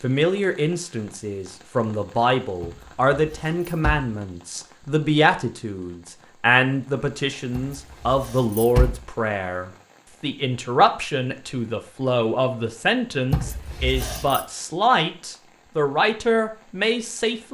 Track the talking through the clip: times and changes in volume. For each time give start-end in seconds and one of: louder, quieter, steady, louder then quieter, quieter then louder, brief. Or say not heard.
0.0-17.5 steady.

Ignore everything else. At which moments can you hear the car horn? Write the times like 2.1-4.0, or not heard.
not heard.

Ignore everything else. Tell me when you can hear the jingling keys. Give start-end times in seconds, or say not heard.
2.6-4.0, 7.5-9.0, 13.3-14.4.